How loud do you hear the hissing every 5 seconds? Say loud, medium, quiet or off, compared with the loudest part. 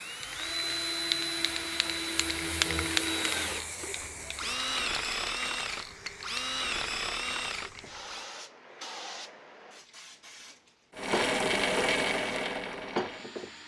loud, medium, loud.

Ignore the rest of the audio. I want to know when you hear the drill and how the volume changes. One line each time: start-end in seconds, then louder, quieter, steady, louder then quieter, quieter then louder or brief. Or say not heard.
0.0-8.2 steady
10.9-13.6 brief.